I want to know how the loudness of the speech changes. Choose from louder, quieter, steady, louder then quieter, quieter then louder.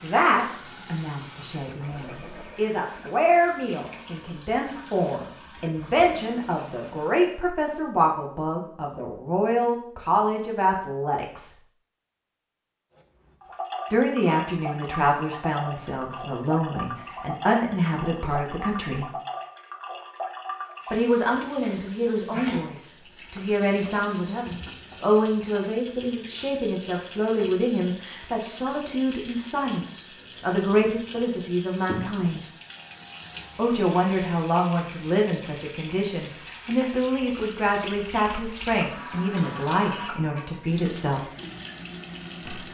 steady.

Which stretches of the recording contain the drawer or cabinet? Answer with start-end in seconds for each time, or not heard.
not heard.